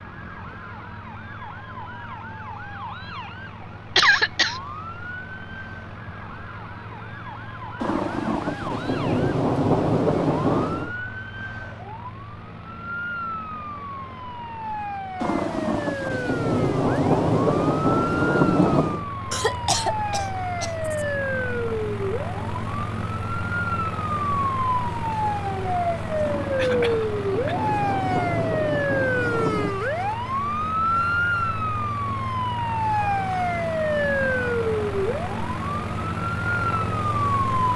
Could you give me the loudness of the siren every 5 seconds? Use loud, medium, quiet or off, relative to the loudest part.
quiet, quiet, medium, medium, loud, loud, loud, loud.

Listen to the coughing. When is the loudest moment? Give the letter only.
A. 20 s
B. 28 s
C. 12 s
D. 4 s
D.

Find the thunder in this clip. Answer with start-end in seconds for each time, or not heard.
7.8-10.9, 15.2-19.1, 26.2-29.8.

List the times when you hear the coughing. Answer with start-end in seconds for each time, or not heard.
4.0-4.6, 19.3-21.1, 26.6-27.7.